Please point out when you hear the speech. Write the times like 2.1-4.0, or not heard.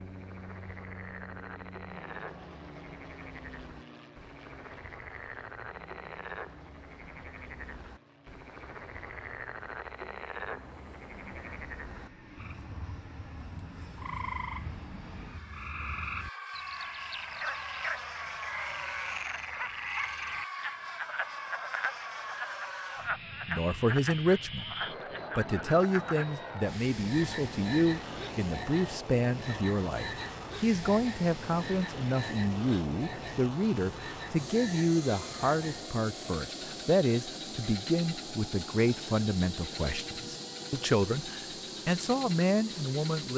23.4-24.7, 25.4-43.3.